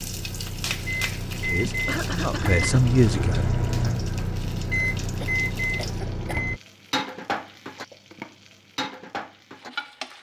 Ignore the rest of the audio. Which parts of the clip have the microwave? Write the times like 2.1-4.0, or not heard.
0.0-6.6.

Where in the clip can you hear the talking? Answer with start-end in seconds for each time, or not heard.
1.4-4.0.